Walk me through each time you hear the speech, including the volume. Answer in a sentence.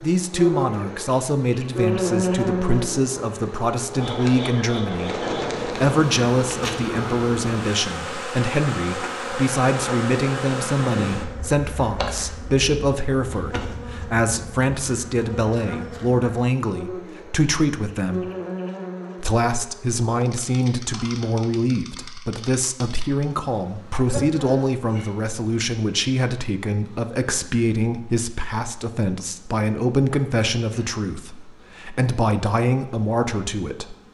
You can hear the speech from 0.0 to 18.3 s, at a steady volume; and from 19.2 to 34.0 s, at a steady volume.